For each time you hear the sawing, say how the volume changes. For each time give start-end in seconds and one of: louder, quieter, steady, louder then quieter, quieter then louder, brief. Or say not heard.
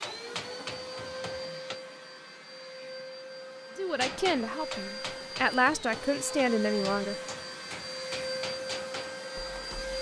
not heard.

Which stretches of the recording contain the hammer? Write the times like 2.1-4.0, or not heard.
0.0-1.8, 4.0-9.9.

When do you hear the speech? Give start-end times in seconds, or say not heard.
3.8-7.2.